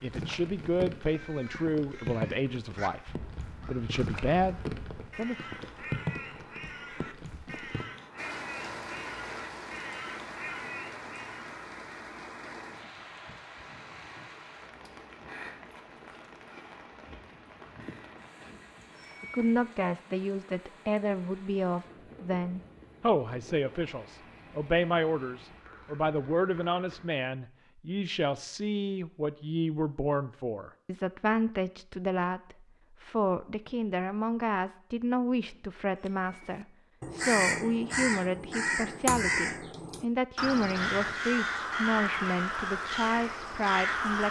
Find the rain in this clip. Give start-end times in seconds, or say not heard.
0.0-27.1.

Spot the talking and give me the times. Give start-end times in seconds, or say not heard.
0.0-5.3, 19.2-44.2.